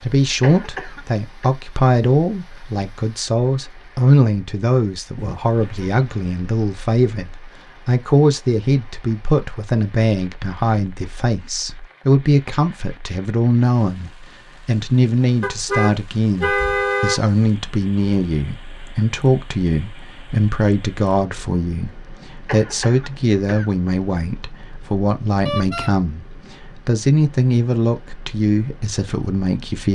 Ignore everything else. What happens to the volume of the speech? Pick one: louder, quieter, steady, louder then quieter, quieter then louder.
steady.